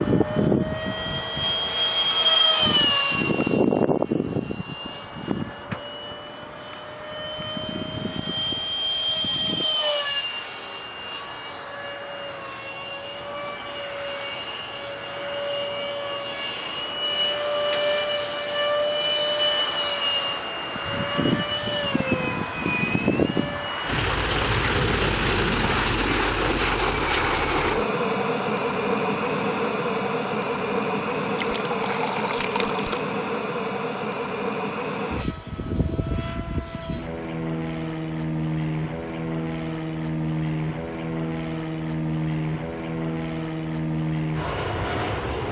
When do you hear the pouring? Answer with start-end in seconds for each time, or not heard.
31.4-33.0.